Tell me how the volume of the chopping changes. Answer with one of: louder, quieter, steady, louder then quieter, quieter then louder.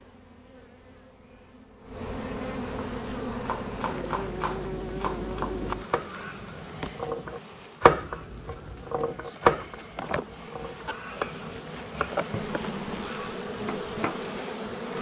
louder then quieter.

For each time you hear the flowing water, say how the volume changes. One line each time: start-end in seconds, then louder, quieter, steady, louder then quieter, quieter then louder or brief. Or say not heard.
not heard.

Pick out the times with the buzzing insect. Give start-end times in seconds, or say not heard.
0.0-14.9.